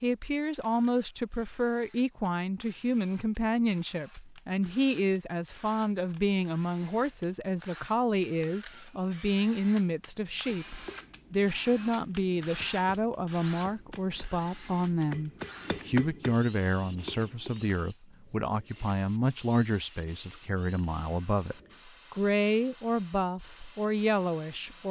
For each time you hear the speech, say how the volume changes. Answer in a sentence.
You can hear the speech from 0.0 to 24.8 s, at a steady volume.